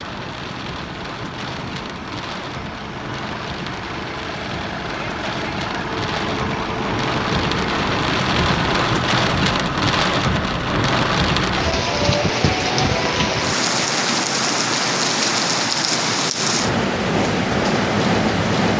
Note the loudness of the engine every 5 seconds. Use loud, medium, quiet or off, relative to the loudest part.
medium, loud, off, off.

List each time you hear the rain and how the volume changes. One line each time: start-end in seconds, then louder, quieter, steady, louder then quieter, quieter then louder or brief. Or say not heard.
0.0-18.7 louder.